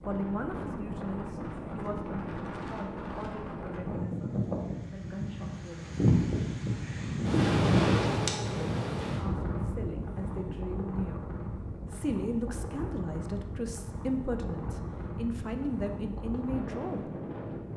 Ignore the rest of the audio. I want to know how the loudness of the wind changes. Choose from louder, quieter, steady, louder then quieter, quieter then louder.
louder then quieter.